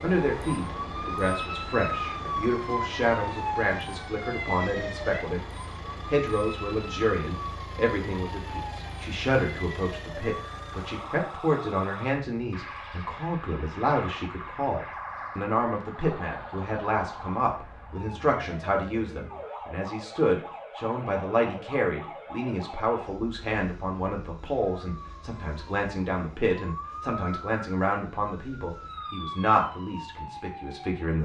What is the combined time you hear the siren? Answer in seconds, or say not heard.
31 s.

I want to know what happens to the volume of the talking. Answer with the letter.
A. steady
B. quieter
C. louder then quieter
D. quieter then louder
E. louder
A.